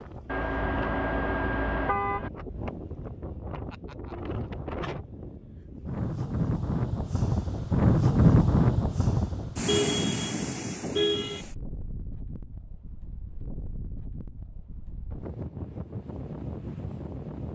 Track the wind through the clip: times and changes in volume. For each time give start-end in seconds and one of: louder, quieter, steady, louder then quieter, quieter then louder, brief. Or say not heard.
0.0-17.4 louder then quieter.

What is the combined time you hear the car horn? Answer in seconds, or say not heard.
4 s.